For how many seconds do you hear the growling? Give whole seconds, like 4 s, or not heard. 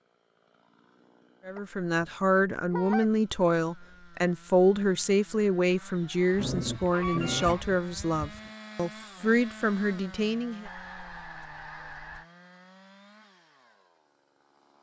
2 s.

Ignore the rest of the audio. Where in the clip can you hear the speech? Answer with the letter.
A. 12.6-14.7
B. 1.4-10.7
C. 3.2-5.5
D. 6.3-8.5
B.